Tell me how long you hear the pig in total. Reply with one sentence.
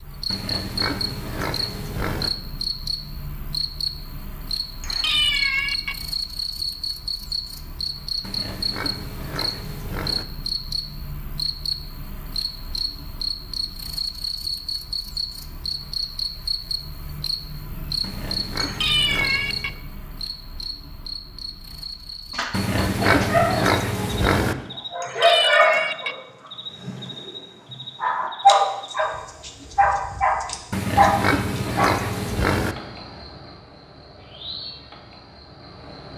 You can hear the pig for 10 seconds altogether.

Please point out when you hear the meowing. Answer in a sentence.
The meowing can be heard from 4.8 to 6.0 s, from 18.6 to 19.7 s and from 25.0 to 26.1 s.